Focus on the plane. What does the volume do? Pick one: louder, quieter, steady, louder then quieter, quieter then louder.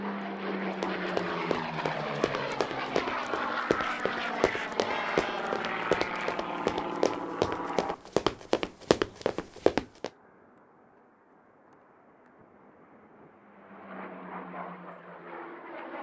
quieter then louder.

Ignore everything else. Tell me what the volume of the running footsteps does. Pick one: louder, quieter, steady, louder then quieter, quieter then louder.
louder.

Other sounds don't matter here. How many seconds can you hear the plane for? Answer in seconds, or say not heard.
16 s.